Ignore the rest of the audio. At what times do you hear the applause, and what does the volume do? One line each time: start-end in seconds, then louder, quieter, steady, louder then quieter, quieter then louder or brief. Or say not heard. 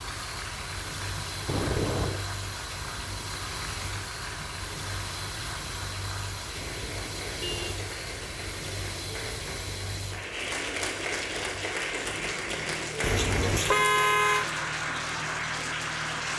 0.0-16.3 louder.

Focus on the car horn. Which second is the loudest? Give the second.
14 s.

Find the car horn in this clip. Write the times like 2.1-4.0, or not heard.
1.4-2.2, 6.5-7.8, 13.0-14.4.